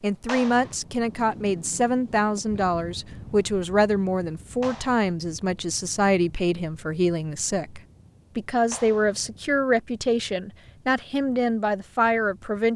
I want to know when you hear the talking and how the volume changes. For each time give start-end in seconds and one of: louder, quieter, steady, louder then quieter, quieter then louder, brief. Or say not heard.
0.0-12.7 steady.